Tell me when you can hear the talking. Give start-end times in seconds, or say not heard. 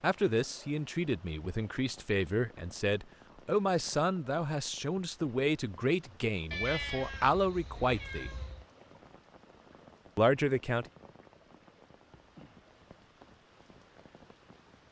0.0-8.3, 10.2-10.8.